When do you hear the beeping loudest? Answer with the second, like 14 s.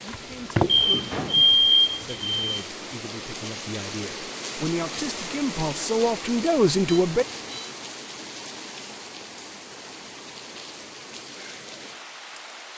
2 s.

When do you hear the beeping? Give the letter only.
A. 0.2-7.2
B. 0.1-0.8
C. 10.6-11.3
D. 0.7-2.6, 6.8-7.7
D.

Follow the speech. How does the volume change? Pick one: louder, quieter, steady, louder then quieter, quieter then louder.
louder.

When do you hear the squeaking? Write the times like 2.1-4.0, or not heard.
0.1-0.8.